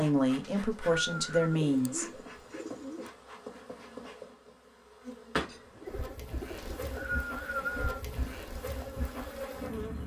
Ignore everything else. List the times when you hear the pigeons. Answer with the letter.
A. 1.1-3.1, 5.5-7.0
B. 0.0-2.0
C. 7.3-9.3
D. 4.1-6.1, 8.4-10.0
A.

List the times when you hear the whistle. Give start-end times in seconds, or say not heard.
0.4-1.6, 6.5-7.9.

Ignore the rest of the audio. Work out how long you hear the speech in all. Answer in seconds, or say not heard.
2 s.